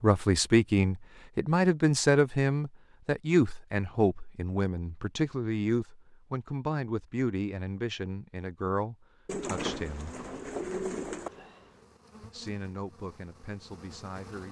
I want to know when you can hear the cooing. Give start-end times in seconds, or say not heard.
9.2-11.3.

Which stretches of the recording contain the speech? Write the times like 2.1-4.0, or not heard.
0.0-10.2, 12.2-14.4.